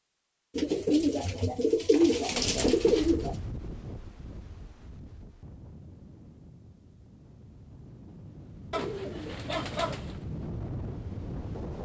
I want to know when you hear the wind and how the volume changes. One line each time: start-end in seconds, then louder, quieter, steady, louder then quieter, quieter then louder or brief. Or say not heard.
2.5-11.7 quieter then louder.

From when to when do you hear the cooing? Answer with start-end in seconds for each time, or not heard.
0.6-3.4, 8.7-10.2.